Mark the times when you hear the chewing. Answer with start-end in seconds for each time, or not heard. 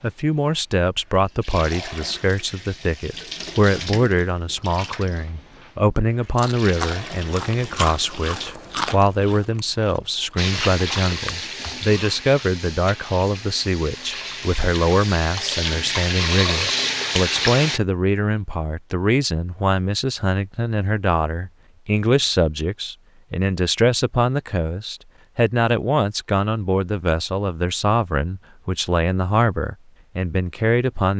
6.3-11.8.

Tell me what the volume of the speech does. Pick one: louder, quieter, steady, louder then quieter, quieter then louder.
steady.